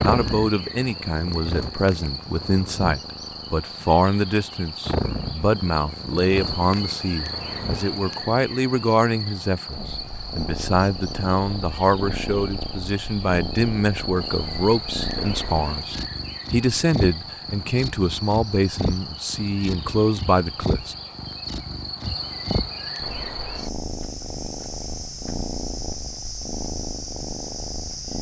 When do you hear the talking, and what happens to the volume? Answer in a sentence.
You can hear the talking from 0.1 to 20.9 s, at a steady volume.